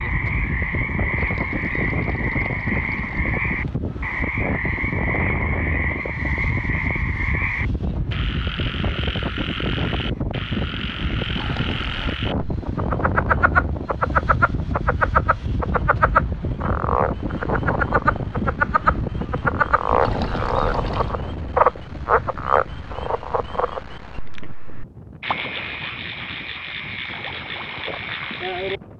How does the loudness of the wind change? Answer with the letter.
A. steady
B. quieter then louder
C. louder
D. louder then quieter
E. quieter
E.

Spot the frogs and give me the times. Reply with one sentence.
You can hear the frogs from 0.0 to 28.8 s.